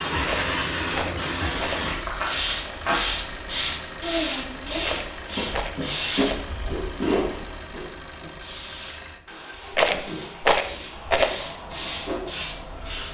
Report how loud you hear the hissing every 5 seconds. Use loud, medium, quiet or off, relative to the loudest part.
loud, loud, medium.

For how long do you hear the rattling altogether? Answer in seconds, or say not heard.
5 s.